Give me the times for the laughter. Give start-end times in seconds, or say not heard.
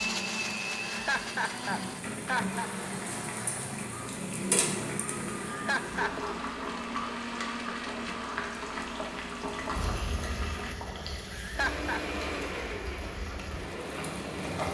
0.8-2.7, 5.4-6.3, 11.3-12.0.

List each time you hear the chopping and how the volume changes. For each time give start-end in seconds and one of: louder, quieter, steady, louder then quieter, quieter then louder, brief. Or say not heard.
not heard.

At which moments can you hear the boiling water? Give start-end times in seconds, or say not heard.
0.0-14.6.